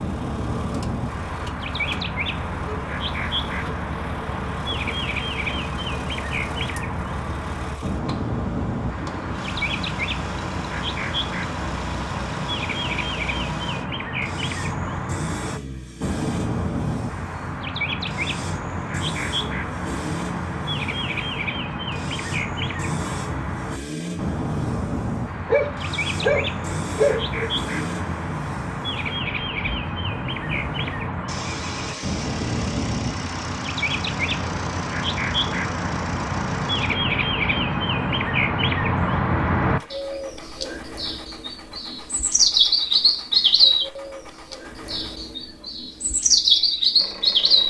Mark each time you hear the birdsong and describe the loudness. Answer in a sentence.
The birdsong can be heard from 0.0 to 47.6 s, getting louder.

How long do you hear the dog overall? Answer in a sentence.
You can hear the dog for 2 seconds altogether.